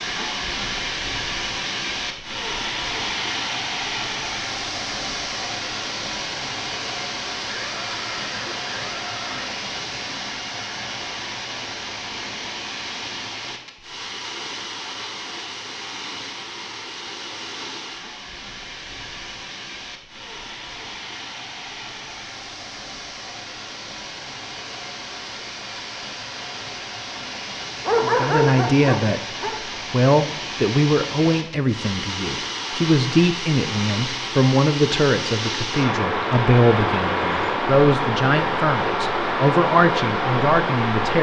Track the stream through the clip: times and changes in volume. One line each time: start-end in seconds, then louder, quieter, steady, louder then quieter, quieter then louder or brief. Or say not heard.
0.0-41.1 quieter then louder.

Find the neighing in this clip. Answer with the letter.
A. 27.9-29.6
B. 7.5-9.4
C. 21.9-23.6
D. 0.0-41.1
B.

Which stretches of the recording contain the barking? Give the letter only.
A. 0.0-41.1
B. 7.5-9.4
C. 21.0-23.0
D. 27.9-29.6
D.